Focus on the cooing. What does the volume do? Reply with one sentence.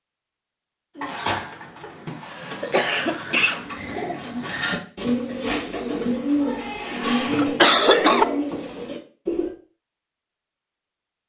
The loudness of the cooing goes up.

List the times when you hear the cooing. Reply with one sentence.
You can hear the cooing from 0.9 to 9.5 s.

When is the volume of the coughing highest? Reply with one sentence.
The volume of the coughing peaks at 8 seconds.